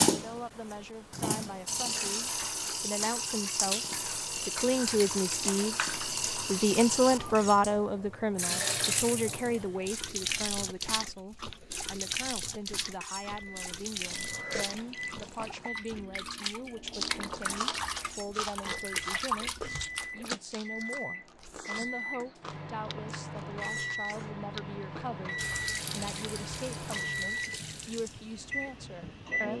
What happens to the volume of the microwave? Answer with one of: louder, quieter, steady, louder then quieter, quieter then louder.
louder.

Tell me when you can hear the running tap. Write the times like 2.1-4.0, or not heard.
0.0-20.3, 25.4-29.4.